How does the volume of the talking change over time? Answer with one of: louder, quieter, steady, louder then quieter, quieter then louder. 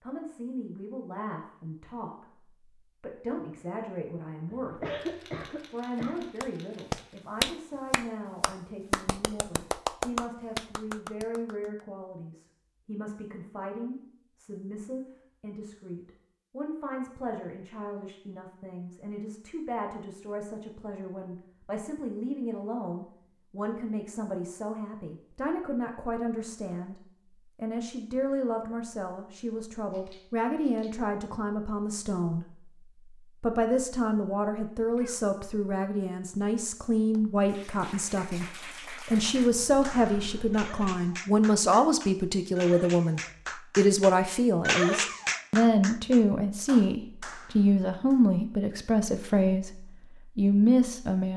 louder.